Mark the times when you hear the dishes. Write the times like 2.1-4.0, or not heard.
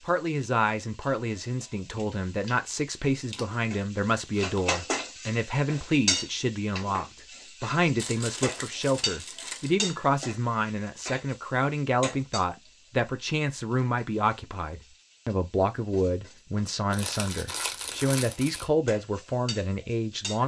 not heard.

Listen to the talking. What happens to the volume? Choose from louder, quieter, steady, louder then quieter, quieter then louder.
steady.